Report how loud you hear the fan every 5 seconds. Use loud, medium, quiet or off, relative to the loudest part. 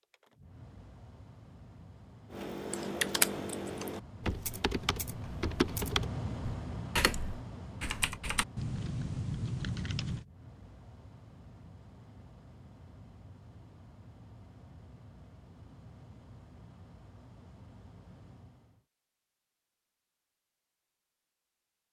medium, loud, quiet, quiet, off.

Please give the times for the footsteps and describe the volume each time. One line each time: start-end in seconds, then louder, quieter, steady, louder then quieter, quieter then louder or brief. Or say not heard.
not heard.